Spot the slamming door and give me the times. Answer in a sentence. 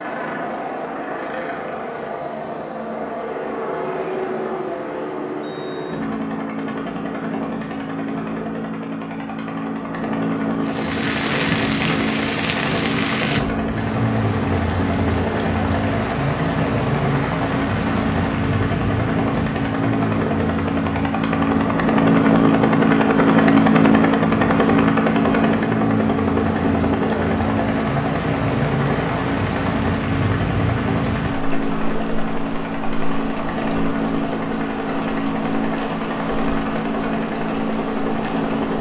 The slamming door can't be heard in this clip.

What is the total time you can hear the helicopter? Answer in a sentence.
The helicopter can be heard for 39 seconds in total.